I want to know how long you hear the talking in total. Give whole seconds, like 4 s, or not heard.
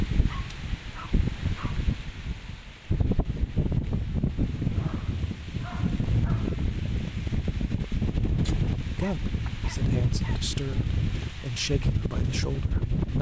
4 s.